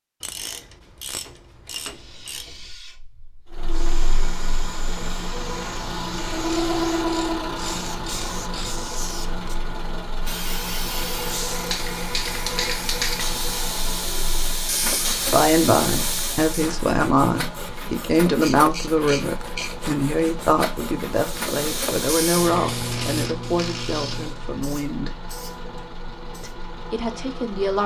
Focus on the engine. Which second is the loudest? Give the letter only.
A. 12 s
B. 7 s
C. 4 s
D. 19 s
B.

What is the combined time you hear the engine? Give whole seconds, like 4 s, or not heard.
24 s.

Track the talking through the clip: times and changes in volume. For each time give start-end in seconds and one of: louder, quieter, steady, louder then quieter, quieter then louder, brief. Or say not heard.
15.2-25.1 quieter
26.4-27.8 brief.